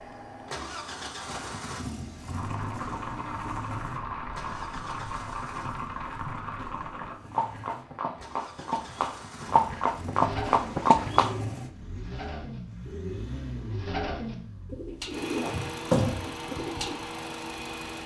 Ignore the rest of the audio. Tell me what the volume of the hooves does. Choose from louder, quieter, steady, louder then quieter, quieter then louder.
louder.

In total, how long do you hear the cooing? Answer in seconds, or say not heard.
7 s.